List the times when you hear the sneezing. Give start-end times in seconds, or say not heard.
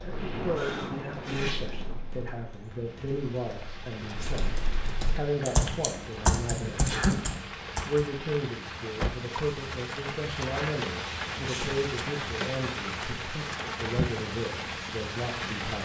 0.6-1.8, 6.7-7.2, 11.3-11.8.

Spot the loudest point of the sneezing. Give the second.
7 s.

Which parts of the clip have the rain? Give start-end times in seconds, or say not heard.
0.0-15.8.